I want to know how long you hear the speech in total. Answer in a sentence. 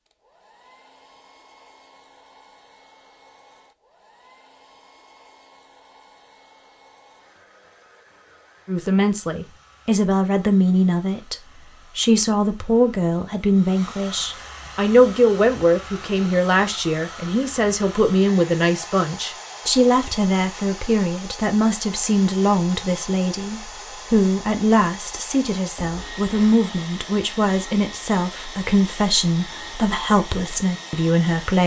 You can hear the speech for 22 seconds altogether.